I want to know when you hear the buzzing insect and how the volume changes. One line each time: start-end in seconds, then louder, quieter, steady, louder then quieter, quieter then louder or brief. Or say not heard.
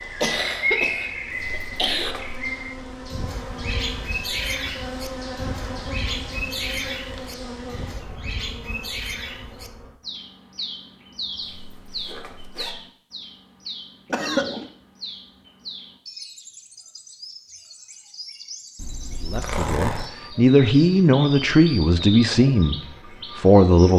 0.0-9.9 louder then quieter.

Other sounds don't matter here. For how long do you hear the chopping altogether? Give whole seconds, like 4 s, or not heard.
not heard.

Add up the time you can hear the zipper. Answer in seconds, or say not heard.
4 s.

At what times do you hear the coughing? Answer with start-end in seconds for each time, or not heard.
0.2-2.1, 14.1-14.7.